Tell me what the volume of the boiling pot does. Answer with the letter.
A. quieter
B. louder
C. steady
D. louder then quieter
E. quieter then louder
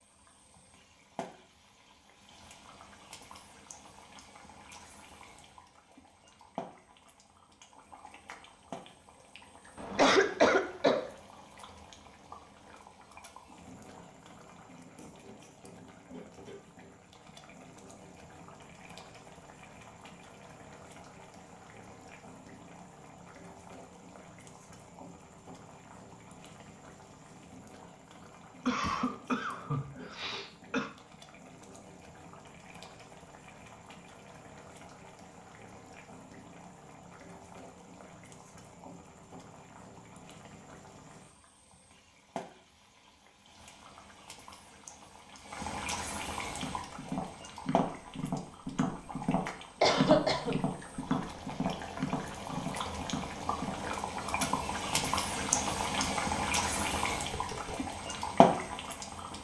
B.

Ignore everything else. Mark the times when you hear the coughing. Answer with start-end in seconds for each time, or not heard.
9.8-11.1, 28.6-30.9, 49.8-50.6.